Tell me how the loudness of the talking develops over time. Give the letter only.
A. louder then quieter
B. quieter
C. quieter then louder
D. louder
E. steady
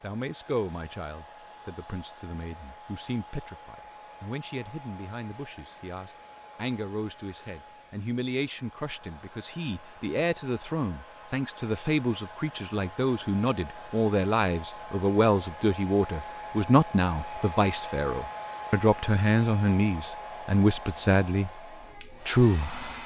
D.